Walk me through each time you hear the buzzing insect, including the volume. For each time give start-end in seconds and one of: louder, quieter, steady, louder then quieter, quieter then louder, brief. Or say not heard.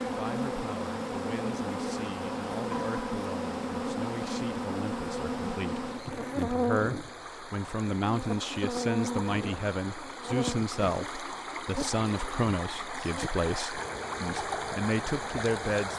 0.0-15.9 quieter.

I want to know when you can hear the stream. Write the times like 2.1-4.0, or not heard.
0.0-15.9.